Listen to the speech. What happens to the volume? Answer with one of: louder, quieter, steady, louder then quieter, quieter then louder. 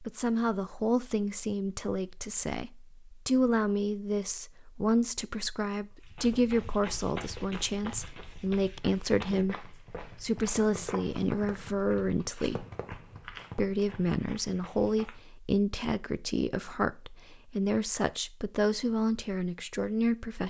steady.